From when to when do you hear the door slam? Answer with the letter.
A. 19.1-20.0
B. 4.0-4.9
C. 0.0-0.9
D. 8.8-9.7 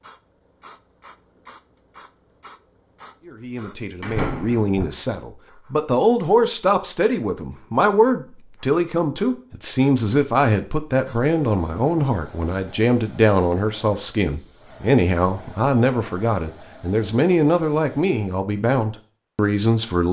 B.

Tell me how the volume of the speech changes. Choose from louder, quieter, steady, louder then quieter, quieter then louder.
steady.